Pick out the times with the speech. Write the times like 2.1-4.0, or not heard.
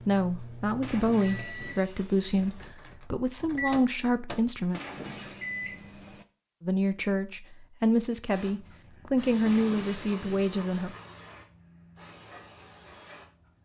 0.1-4.8, 6.6-10.9.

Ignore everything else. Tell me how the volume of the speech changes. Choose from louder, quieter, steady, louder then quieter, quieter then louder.
steady.